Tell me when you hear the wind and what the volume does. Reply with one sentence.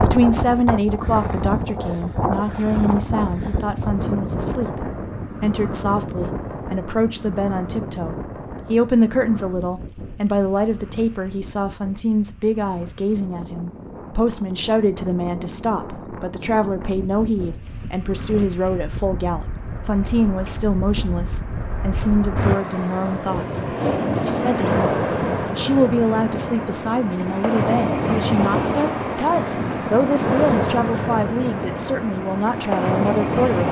The wind can be heard from 0.0 to 33.6 s, getting quieter then louder.